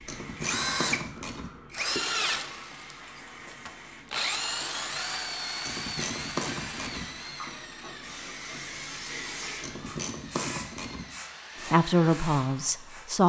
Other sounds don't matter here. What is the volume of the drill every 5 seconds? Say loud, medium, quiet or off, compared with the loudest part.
loud, medium, quiet.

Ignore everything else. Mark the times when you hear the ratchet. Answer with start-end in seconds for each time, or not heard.
0.1-1.5, 5.6-7.1, 9.6-11.1.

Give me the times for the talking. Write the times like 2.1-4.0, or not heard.
11.7-13.2.